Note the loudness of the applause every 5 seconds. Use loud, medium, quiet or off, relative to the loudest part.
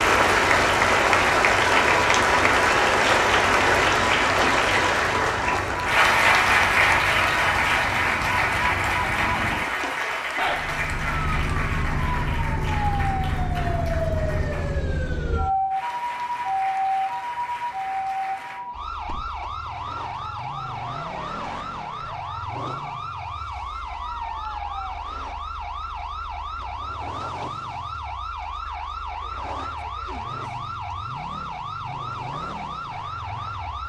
loud, loud, quiet, quiet, off, off, off.